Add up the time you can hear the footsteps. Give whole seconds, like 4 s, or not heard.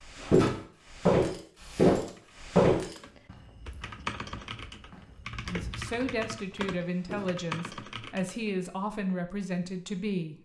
7 s.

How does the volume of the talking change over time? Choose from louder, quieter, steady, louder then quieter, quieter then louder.
steady.